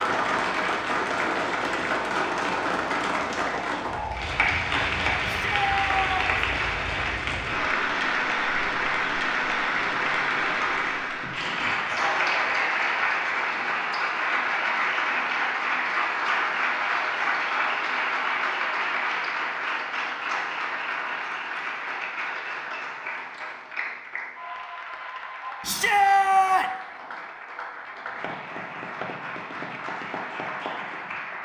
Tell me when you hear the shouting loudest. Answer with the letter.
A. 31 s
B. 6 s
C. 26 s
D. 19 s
C.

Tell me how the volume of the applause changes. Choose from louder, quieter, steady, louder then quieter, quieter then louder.
quieter.